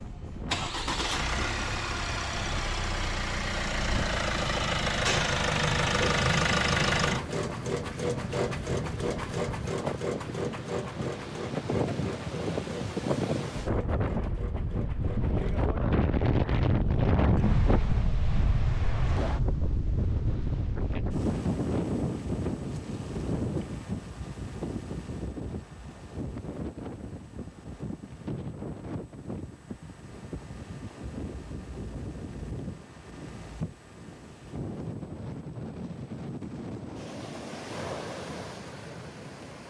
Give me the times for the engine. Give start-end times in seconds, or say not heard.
0.0-15.8.